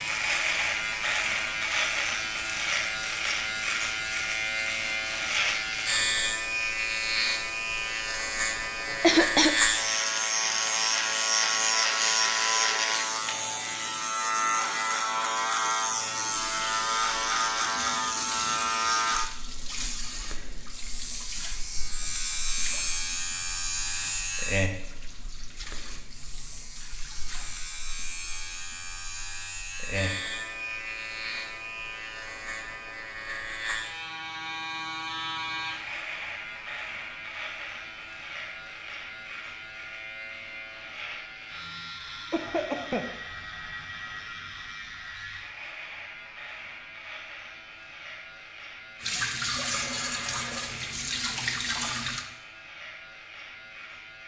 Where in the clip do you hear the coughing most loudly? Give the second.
9 s.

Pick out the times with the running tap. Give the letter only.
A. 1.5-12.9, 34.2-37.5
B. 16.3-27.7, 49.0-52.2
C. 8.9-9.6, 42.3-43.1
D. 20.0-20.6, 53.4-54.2
B.